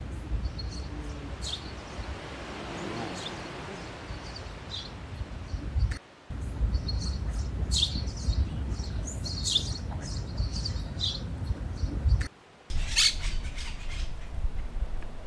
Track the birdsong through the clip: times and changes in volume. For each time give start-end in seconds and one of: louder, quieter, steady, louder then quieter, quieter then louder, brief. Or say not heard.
0.0-15.2 louder.